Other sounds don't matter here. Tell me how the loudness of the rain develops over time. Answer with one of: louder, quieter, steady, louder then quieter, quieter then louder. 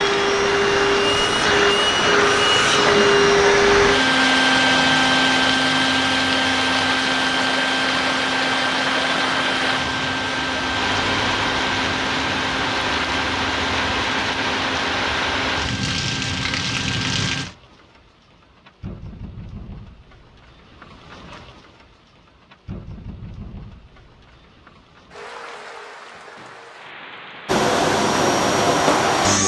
quieter.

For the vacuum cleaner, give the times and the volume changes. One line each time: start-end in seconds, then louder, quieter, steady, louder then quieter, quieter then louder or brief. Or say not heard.
0.0-17.5 quieter
27.4-29.4 brief.